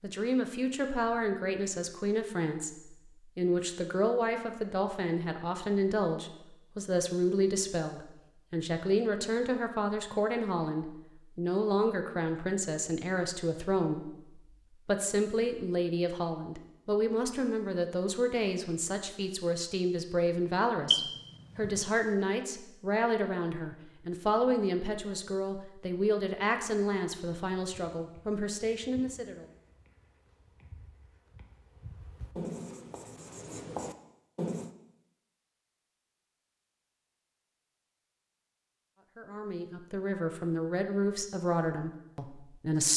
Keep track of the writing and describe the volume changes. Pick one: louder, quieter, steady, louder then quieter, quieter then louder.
quieter then louder.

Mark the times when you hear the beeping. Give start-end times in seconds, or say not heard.
20.9-21.9.